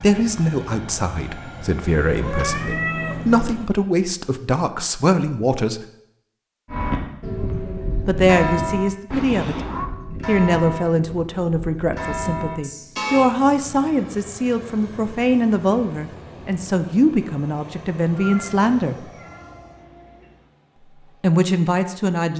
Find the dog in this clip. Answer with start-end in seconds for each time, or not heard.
not heard.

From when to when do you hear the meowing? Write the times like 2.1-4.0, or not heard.
2.0-3.5, 9.1-9.9, 18.2-20.4.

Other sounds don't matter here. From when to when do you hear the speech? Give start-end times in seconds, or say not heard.
0.0-5.8, 8.1-19.1, 21.2-22.3.